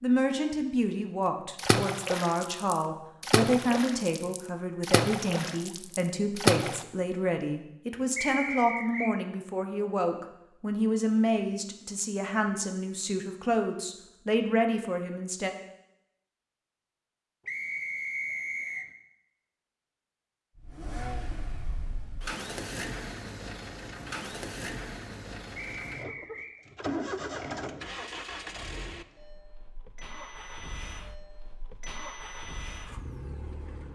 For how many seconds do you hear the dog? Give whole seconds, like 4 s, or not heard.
not heard.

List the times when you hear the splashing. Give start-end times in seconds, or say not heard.
1.6-6.8.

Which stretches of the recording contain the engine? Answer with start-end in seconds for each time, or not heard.
20.6-33.9.